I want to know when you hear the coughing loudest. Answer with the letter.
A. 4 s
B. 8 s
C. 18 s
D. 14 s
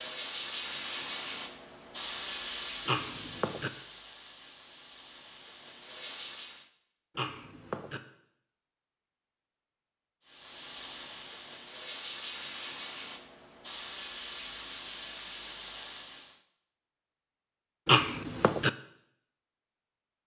C.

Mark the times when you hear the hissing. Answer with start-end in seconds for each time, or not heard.
0.0-6.7, 10.2-16.4.